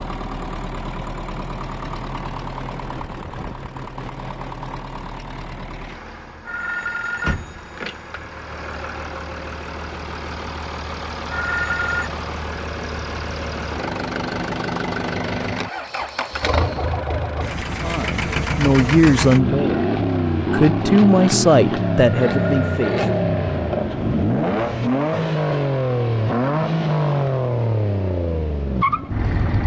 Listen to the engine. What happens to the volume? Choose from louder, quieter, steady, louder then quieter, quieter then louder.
louder.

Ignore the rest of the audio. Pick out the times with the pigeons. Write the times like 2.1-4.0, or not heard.
not heard.